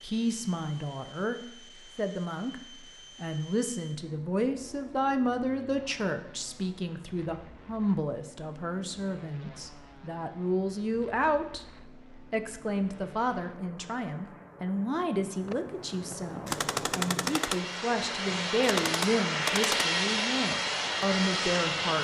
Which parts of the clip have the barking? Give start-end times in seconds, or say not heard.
not heard.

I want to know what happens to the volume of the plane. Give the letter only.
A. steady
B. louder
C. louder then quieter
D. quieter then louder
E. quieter
B.